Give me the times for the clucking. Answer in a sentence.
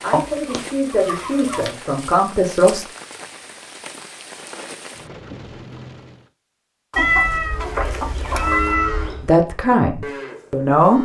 The clucking can be heard from 0.1 to 1.8 s and from 6.9 to 8.8 s.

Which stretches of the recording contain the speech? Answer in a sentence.
The speech can be heard from 0.0 to 2.9 s and from 9.2 to 10.9 s.